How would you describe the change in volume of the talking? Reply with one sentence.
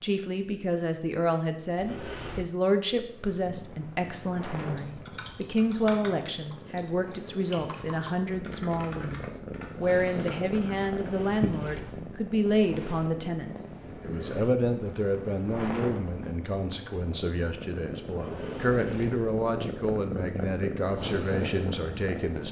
The volume of the talking stays about the same.